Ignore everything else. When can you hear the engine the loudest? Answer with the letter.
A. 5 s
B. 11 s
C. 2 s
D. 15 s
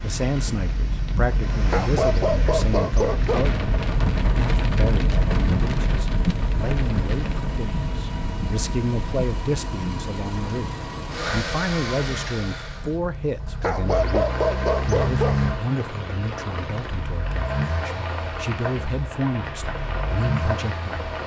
D.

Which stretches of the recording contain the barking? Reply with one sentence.
You can hear the barking from 1.7 to 3.5 s and from 13.6 to 15.4 s.